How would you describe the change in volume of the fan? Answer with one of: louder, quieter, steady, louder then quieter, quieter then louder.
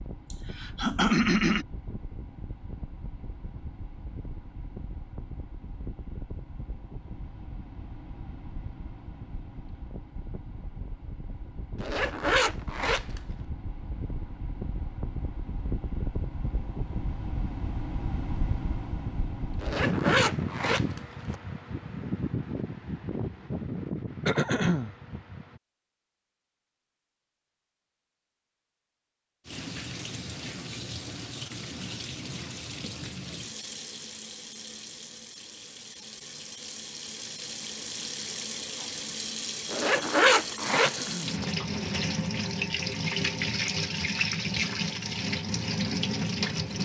louder.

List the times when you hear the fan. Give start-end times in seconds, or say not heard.
0.0-25.6.